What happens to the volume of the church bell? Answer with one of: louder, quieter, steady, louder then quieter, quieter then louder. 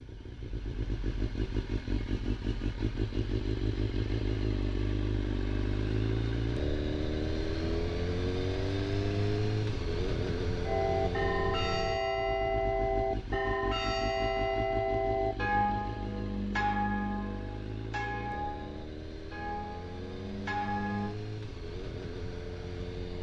quieter.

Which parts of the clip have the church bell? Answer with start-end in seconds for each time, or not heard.
10.7-21.1.